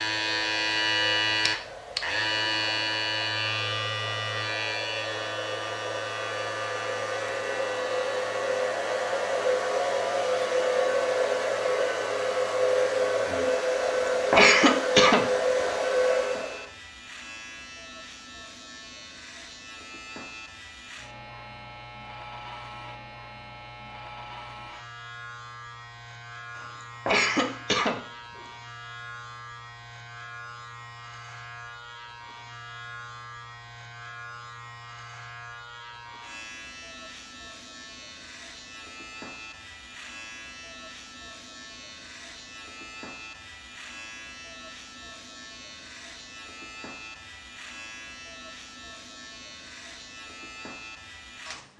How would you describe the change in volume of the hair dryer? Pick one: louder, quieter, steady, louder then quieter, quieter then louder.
louder.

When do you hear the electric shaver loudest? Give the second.
1 s.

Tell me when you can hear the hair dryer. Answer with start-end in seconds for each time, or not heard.
0.2-16.7.